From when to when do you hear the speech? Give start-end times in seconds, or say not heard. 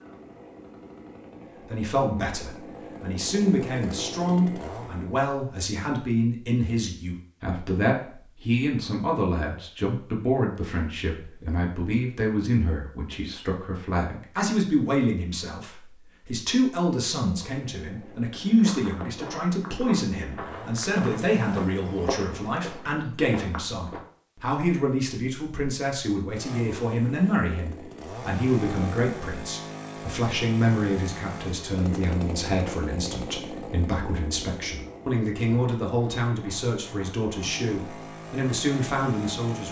1.7-39.6.